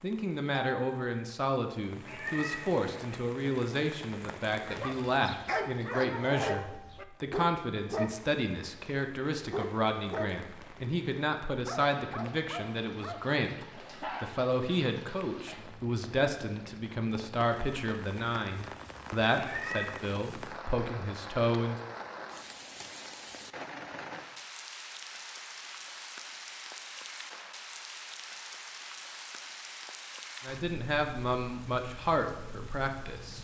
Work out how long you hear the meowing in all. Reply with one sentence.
You can hear the meowing for 2 seconds altogether.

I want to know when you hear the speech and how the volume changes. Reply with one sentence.
The speech can be heard from 0.0 to 21.8 s, at a steady volume; and briefly from 30.4 to 33.3 s.